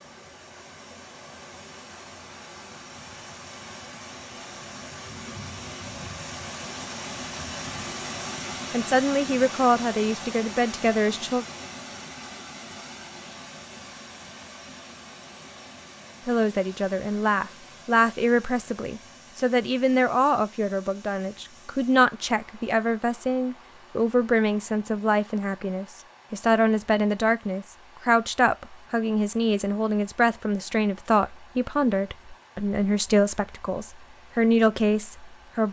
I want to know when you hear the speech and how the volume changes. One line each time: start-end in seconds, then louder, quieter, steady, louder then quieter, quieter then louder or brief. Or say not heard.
8.7-11.4 brief
16.2-35.6 steady.